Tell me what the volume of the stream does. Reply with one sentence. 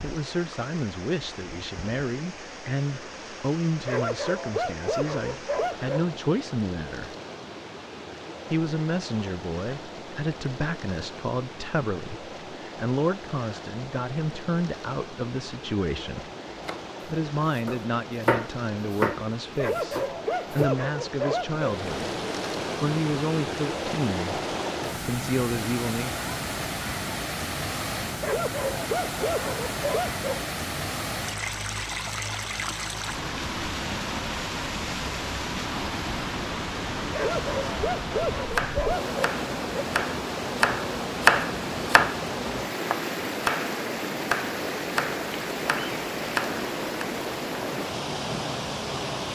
The loudness of the stream goes up.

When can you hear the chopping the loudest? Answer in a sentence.
The volume of the chopping peaks at 41 seconds.